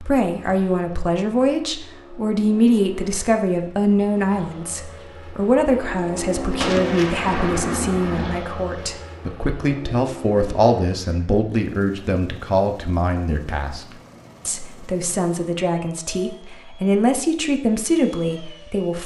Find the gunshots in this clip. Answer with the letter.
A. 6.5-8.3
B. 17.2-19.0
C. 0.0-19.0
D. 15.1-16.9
A.